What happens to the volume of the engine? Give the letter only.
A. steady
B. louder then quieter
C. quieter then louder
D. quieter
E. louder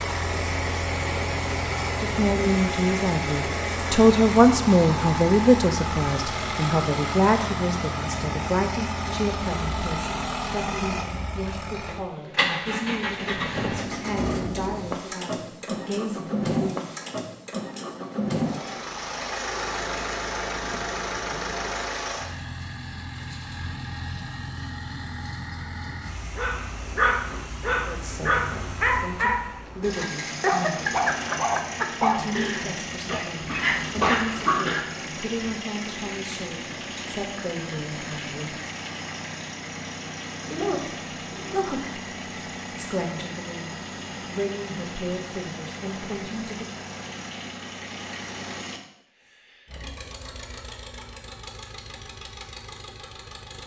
D.